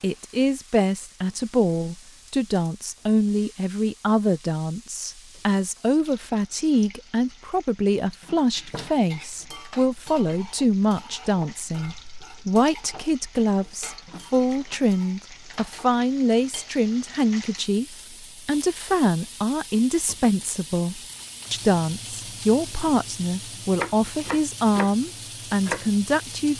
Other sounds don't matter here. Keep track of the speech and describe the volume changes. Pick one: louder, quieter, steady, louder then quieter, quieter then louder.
steady.